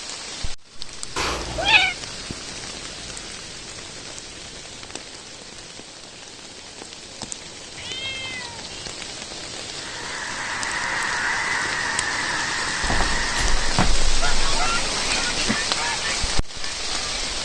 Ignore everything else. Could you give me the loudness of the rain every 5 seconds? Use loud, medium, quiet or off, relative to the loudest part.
medium, medium, loud, loud.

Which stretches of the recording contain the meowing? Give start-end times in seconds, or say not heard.
1.1-1.9, 7.8-8.8, 12.8-15.6.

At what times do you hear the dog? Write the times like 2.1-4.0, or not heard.
not heard.